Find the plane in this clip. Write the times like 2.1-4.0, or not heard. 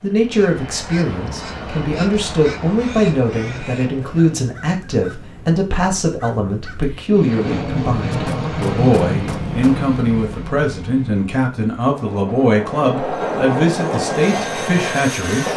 0.0-4.3, 7.0-15.5.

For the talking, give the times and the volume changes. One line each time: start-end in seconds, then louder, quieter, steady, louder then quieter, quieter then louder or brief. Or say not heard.
0.0-15.5 steady.